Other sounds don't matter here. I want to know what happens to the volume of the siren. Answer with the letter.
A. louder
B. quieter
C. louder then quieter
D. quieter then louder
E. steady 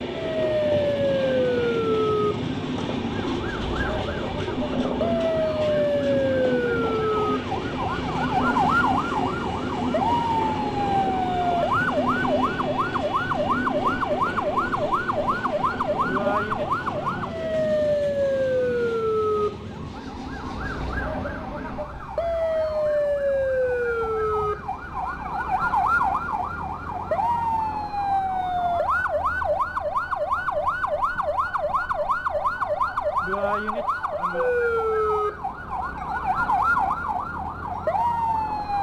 E.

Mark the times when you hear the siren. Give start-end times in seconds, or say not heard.
0.0-38.7.